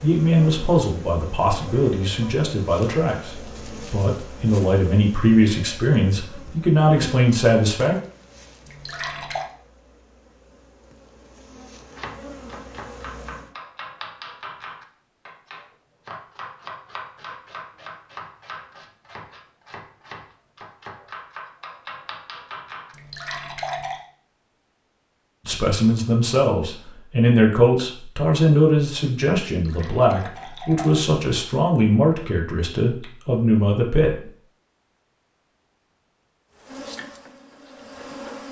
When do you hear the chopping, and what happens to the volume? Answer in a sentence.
You can hear the chopping from 11.9 to 22.9 s, at a steady volume.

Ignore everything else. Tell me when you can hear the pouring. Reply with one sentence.
You can hear the pouring from 8.7 to 9.4 s, from 22.9 to 24.0 s and from 29.5 to 31.1 s.